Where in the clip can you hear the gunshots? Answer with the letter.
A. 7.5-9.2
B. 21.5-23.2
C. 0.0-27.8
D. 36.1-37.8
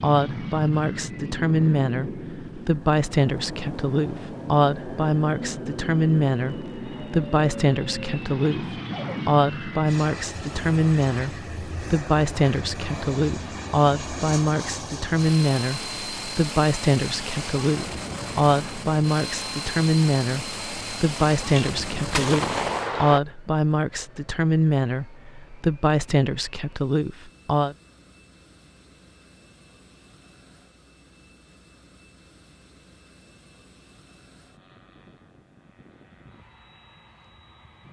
B.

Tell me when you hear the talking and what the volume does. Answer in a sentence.
You can hear the talking from 0.0 to 27.8 s, at a steady volume.